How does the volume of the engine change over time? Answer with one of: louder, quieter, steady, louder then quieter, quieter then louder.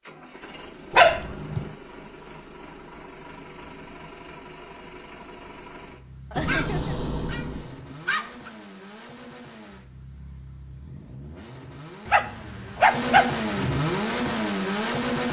louder.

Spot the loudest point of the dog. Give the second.
1 s.